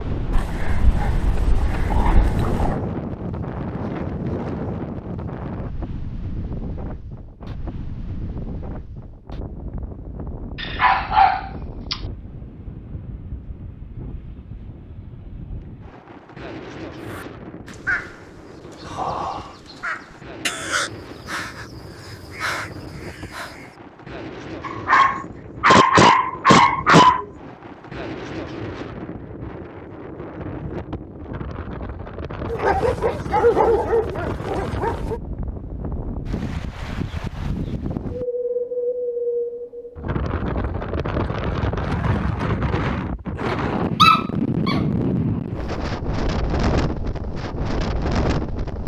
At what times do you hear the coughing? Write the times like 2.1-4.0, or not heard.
not heard.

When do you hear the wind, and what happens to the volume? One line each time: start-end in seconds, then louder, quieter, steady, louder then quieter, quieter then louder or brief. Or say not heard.
0.0-48.8 quieter then louder.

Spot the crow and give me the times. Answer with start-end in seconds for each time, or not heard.
17.0-23.8.